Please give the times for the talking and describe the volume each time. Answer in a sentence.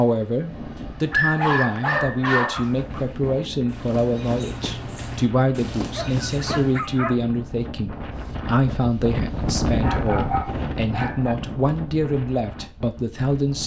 The talking can be heard from 0.0 to 13.6 s, at a steady volume.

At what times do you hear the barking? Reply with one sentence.
You can hear the barking from 1.1 to 2.7 s, from 5.9 to 7.2 s and from 9.8 to 11.3 s.